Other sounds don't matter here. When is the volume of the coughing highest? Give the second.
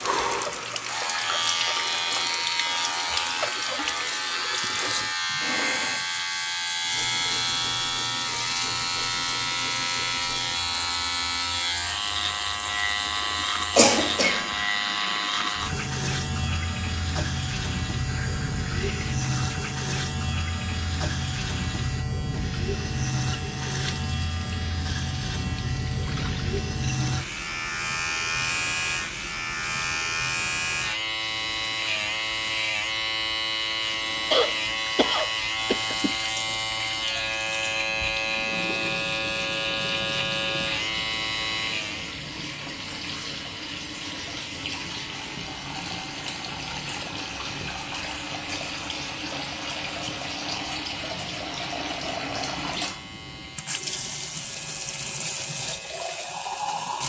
14 s.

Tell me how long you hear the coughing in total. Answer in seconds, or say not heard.
3 s.